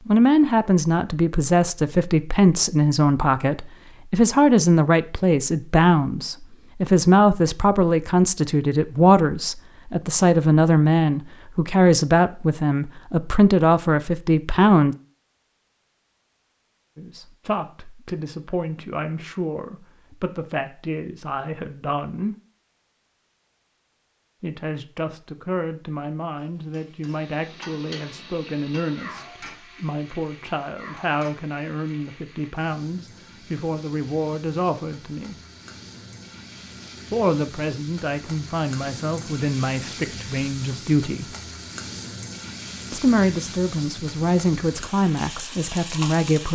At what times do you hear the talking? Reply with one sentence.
You can hear the talking from 0.1 to 14.9 s, from 16.9 to 22.4 s, from 24.4 to 35.4 s, from 37.1 to 41.4 s and from 42.9 to 46.5 s.